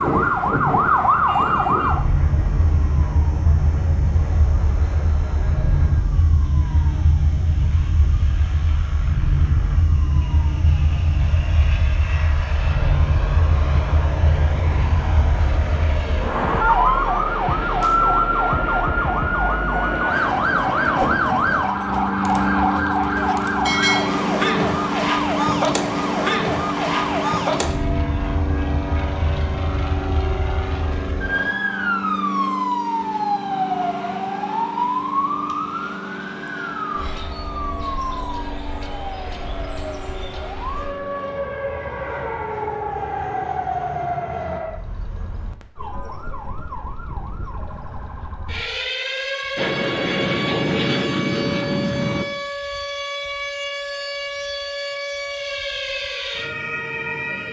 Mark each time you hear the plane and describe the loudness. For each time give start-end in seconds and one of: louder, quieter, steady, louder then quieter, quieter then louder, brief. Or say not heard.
0.1-44.6 louder then quieter
49.5-52.2 brief.